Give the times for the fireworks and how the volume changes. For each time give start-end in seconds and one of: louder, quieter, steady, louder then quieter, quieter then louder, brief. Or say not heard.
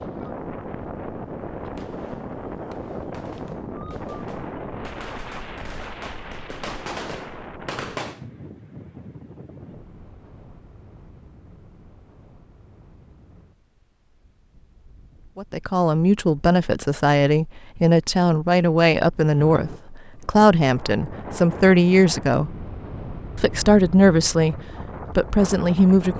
1.6-8.2 louder.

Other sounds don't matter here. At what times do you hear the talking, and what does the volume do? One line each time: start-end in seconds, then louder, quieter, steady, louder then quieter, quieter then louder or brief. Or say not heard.
15.3-22.5 steady
23.4-26.1 brief.